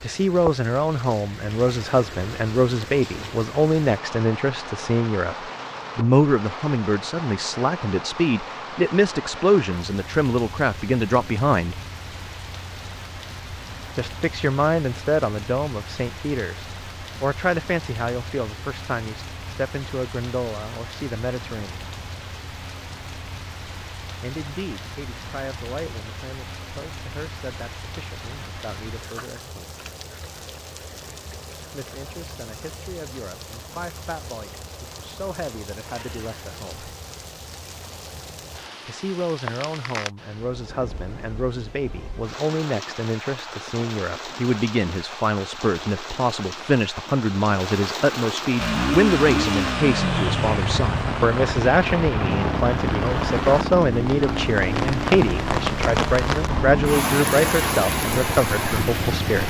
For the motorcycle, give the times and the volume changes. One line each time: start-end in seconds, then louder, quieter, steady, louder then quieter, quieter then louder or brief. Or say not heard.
48.5-59.4 quieter.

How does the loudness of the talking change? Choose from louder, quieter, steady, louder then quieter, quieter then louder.
quieter then louder.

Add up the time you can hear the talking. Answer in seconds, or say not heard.
51 s.